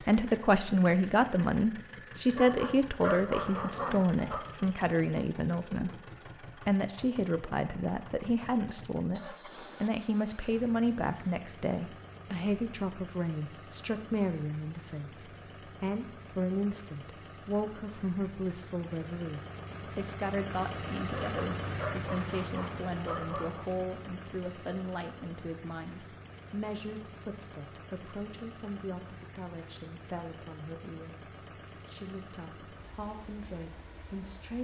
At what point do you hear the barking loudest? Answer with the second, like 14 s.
3 s.